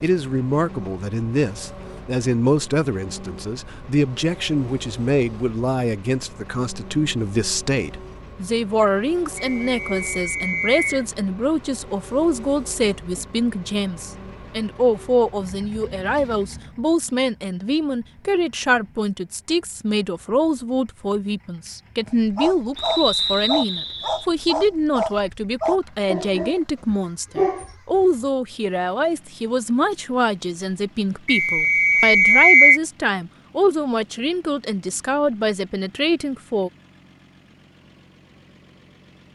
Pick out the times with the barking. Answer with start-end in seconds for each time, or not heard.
22.1-27.8.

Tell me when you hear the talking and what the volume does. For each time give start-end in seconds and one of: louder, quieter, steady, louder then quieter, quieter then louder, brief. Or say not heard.
0.0-36.7 steady.